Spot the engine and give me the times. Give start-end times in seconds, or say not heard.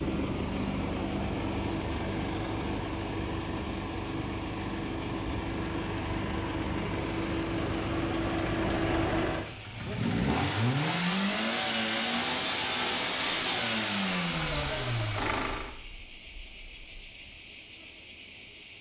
0.0-15.8.